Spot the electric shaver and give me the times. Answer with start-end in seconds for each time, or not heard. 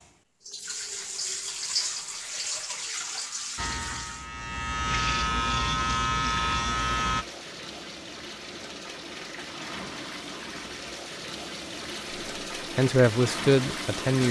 3.5-7.2.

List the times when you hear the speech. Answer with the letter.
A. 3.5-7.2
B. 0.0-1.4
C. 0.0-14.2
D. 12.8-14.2
D.